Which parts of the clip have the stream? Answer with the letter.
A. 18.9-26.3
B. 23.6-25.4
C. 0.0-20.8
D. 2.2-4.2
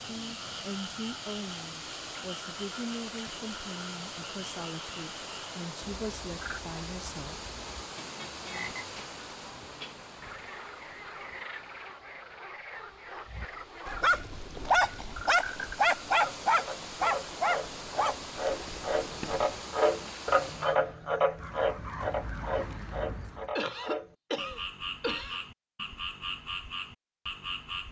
C.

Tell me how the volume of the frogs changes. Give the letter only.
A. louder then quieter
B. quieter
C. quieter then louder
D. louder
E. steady
A.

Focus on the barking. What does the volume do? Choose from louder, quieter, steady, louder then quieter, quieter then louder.
quieter.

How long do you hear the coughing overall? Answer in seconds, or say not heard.
2 s.